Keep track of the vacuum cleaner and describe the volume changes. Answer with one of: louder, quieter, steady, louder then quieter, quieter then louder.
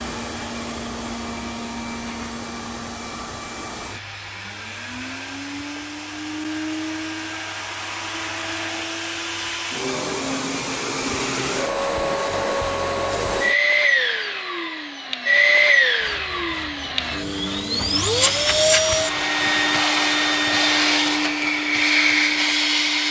louder.